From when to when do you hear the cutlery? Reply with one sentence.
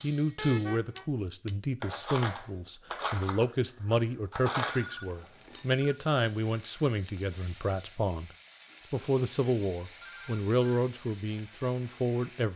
You can hear the cutlery from 0.0 to 5.3 s.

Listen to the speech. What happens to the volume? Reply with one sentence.
The volume of the speech stays about the same.